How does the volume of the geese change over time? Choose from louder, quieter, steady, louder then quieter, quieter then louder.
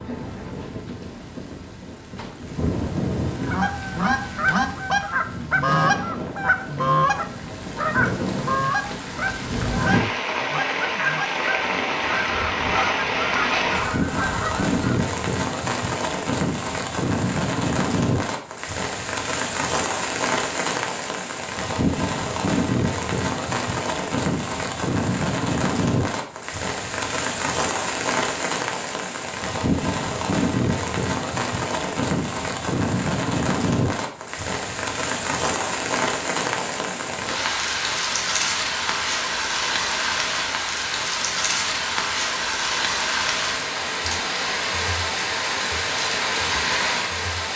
quieter.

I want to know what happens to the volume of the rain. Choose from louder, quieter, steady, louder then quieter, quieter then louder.
louder.